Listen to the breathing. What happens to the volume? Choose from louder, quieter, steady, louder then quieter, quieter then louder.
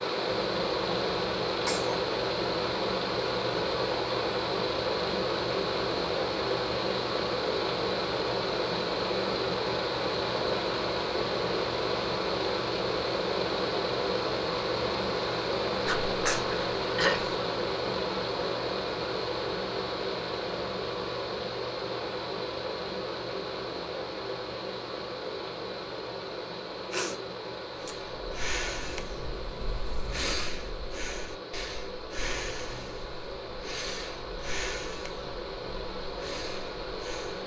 quieter.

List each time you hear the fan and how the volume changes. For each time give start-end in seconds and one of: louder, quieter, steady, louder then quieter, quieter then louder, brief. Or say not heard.
0.0-37.4 quieter.